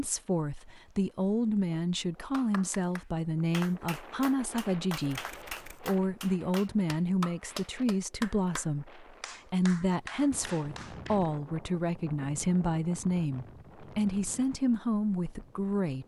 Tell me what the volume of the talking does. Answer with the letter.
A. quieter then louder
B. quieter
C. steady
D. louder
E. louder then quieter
C.